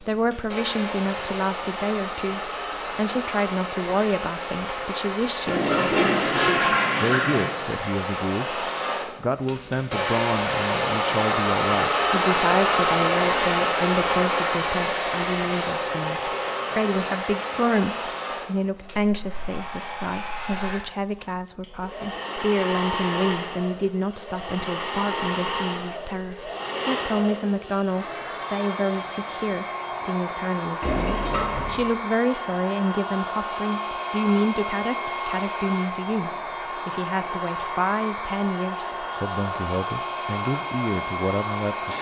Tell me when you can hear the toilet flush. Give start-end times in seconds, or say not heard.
5.5-7.5, 30.8-31.9.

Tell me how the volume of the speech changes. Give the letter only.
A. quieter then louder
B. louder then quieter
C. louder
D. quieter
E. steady
E.